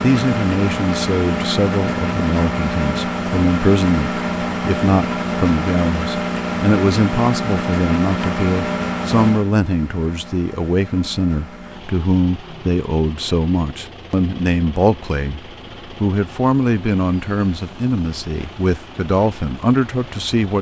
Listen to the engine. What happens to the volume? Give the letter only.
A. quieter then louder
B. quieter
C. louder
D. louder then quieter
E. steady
B.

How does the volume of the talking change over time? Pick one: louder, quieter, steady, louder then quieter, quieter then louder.
steady.